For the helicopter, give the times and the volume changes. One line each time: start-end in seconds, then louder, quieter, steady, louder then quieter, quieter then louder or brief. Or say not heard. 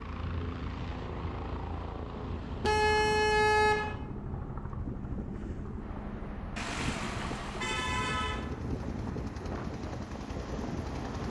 0.0-11.2 steady.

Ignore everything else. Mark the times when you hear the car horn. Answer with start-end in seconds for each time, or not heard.
2.6-4.0, 6.5-8.4.